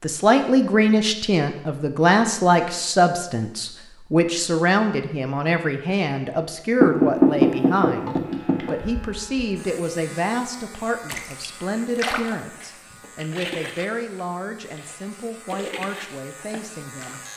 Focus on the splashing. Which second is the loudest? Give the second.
12 s.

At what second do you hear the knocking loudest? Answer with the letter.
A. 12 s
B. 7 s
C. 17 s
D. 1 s
B.